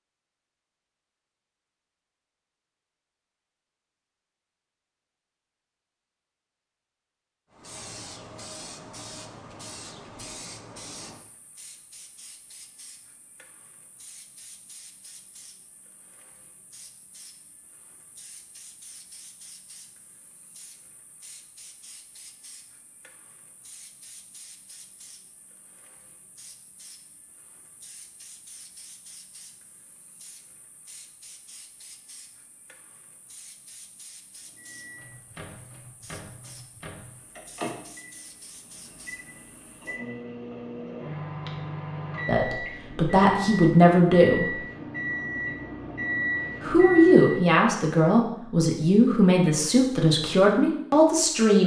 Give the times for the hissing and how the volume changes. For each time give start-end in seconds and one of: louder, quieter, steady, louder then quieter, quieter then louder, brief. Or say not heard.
7.5-40.0 quieter.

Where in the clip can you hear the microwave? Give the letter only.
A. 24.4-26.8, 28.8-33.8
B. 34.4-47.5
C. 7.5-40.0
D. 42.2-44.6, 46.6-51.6
B.